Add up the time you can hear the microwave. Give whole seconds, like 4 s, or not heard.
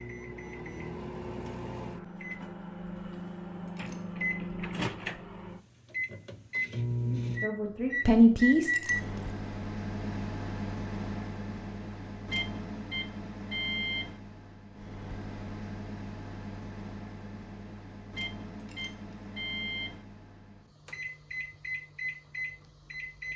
23 s.